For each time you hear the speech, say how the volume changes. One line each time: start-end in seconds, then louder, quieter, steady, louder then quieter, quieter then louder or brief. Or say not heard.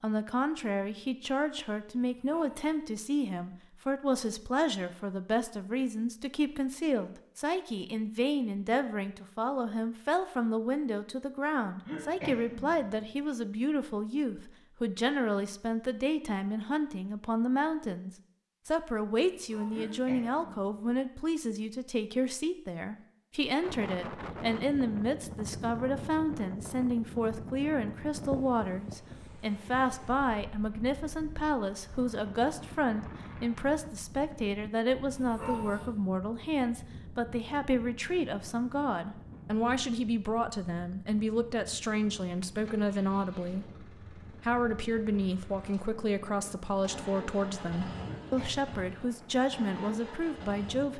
0.0-50.9 steady.